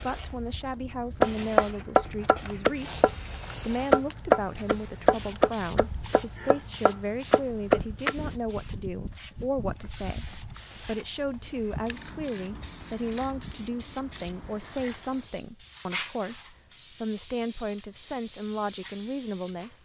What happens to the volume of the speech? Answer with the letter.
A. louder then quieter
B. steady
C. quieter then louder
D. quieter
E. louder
B.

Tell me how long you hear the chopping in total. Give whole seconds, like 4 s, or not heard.
7 s.